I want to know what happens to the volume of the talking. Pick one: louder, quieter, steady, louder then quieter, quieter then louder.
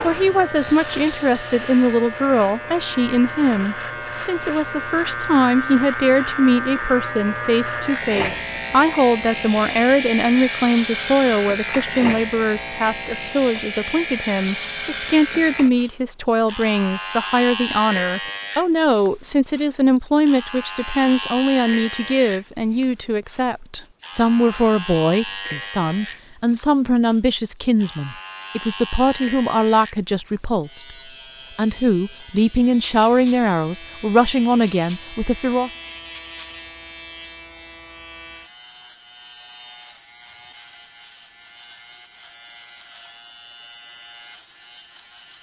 steady.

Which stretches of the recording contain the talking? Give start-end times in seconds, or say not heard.
0.0-30.9, 31.6-35.7.